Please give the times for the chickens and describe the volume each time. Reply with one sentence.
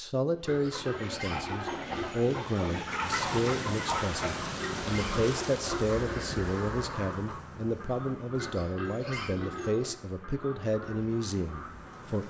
You can hear the chickens from 0.5 to 12.1 s, getting quieter.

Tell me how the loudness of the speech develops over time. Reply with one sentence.
The volume of the speech stays about the same.